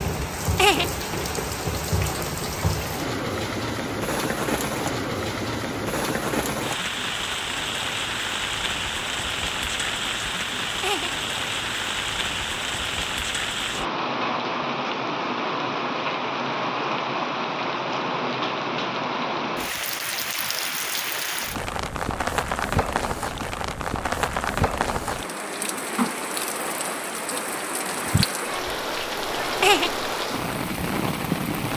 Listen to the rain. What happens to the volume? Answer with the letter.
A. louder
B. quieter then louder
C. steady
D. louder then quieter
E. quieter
C.